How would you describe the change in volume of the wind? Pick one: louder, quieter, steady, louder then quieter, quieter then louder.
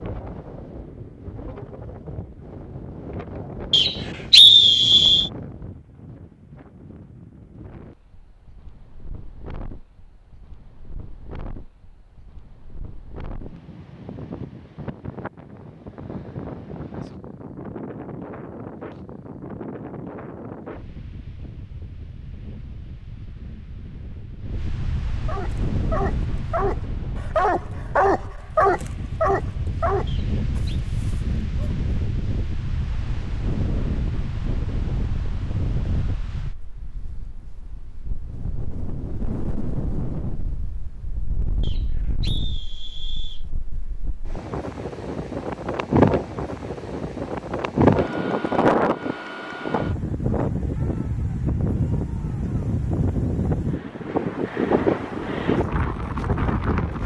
louder.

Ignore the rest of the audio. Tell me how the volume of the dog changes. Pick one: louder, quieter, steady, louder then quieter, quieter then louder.
louder then quieter.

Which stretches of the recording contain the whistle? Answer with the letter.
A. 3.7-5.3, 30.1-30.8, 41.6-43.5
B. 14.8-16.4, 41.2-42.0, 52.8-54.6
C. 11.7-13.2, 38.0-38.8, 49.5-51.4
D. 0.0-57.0
A.